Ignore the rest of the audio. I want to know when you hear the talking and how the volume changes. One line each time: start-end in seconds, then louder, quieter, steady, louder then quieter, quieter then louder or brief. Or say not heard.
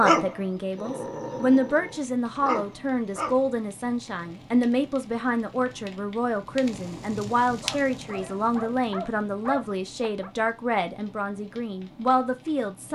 0.0-12.8 steady.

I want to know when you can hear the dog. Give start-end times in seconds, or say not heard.
0.0-3.5, 7.6-10.3.